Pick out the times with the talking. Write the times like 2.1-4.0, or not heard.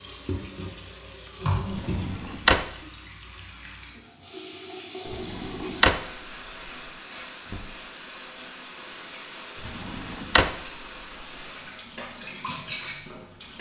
not heard.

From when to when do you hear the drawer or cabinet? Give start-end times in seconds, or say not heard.
1.7-2.6, 5.0-6.0, 9.6-10.8.